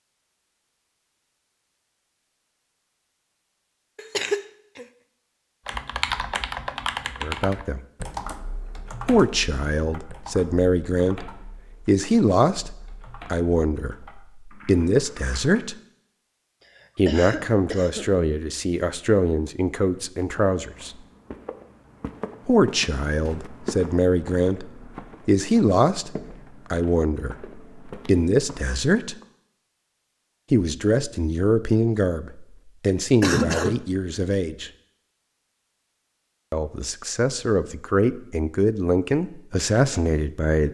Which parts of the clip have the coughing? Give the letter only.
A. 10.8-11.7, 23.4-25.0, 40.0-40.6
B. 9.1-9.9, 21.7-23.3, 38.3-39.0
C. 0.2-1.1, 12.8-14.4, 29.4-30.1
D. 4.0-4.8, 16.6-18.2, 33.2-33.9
D.